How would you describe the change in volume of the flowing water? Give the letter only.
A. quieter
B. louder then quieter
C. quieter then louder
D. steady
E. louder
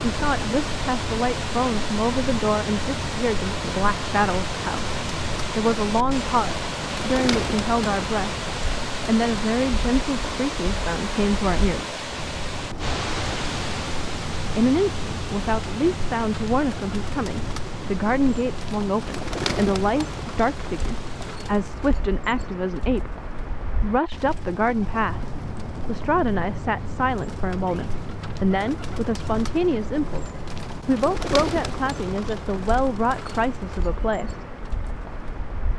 A.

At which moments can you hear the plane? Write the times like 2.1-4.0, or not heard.
not heard.